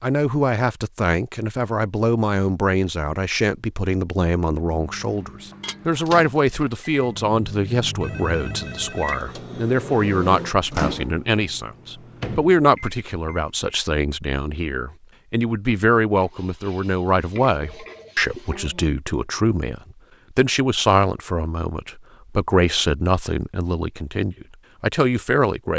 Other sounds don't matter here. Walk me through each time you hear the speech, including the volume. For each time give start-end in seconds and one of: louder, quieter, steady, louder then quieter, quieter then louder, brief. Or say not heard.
0.0-25.7 steady.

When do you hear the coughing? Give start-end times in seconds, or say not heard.
not heard.